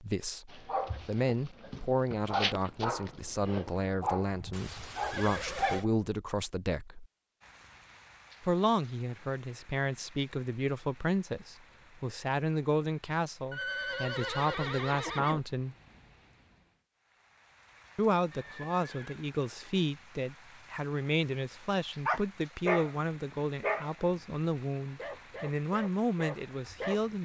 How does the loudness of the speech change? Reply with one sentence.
The volume of the speech stays about the same.